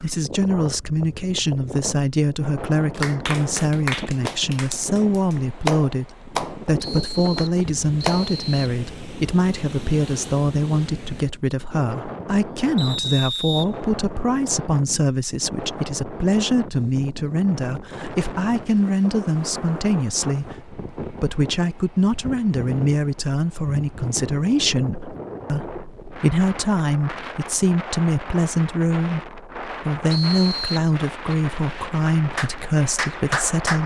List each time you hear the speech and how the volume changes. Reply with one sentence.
The speech can be heard from 0.0 to 33.8 s, at a steady volume.